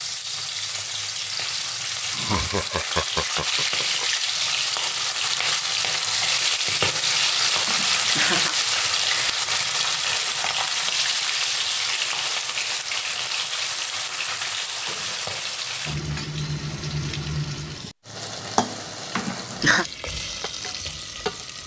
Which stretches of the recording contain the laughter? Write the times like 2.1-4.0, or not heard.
2.1-4.0, 7.7-8.6, 19.1-19.9.